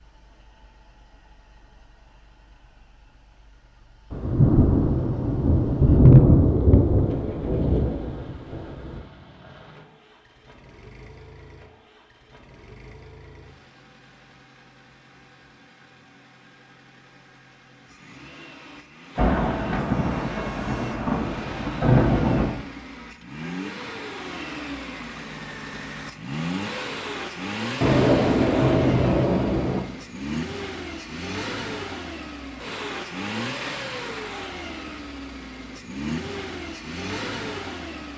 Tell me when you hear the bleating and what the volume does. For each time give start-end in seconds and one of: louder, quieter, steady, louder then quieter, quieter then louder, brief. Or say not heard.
not heard.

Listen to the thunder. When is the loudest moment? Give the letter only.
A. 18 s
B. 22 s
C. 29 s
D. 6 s
D.